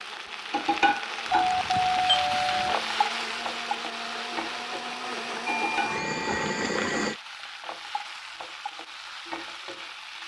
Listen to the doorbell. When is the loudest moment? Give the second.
2 s.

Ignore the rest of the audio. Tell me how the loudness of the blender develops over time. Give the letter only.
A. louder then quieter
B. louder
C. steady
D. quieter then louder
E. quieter
B.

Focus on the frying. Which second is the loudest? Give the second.
1 s.